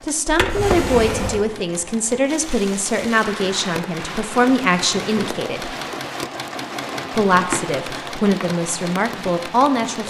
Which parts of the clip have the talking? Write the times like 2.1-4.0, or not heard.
0.0-5.8, 7.1-10.0.